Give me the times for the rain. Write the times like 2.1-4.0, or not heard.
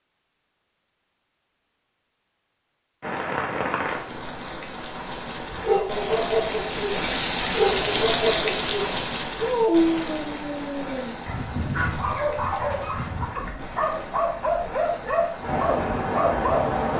3.0-16.9.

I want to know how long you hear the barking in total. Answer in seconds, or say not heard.
11 s.